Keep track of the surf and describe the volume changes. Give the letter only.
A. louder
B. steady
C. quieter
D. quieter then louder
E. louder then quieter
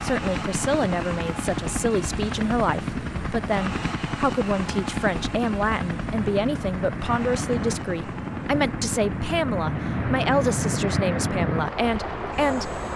A.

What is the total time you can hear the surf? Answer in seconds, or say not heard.
13 s.